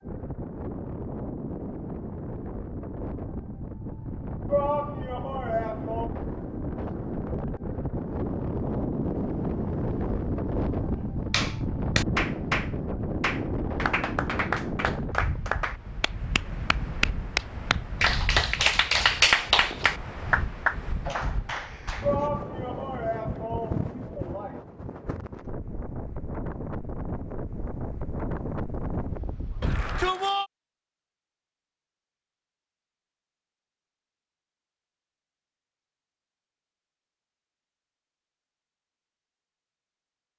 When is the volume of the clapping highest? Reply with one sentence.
The loudest moment of the clapping is at 19 seconds.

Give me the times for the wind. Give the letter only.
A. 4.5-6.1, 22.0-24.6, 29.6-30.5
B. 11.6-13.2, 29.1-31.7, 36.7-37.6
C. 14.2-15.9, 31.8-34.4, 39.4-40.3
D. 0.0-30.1
D.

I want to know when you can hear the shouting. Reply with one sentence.
The shouting can be heard from 4.5 to 6.1 s, from 22.0 to 24.6 s and from 29.6 to 30.5 s.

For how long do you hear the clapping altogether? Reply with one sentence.
The clapping can be heard for 11 seconds in total.